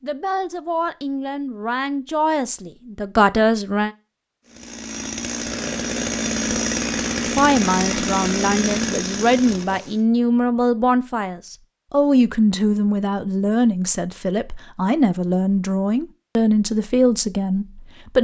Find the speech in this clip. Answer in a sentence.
You can hear the speech from 0.0 to 3.9 s and from 7.3 to 18.1 s.